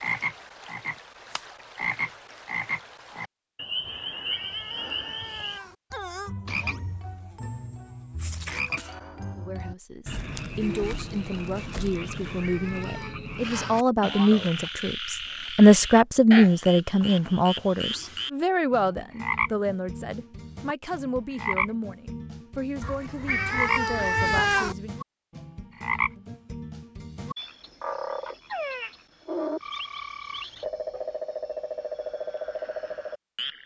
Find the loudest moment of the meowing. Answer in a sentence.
The volume of the meowing peaks at 24 seconds.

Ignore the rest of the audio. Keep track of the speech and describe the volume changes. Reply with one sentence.
The volume of the speech goes up, then down.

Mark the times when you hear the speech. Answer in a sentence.
You can hear the speech from 9.3 to 24.9 s.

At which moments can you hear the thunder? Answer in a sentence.
The thunder can't be heard in this clip.